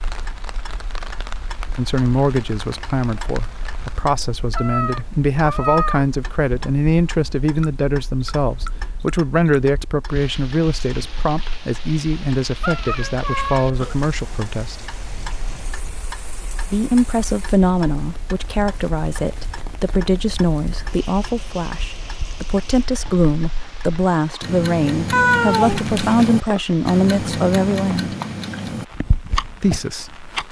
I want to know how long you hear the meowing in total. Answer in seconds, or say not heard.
4 s.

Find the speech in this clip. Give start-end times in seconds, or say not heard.
1.8-14.8, 16.7-28.1, 29.6-30.2.